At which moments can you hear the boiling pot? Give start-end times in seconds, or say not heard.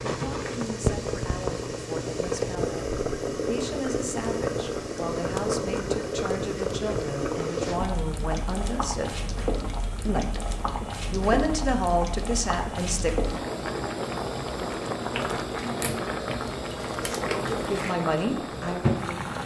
0.0-19.4.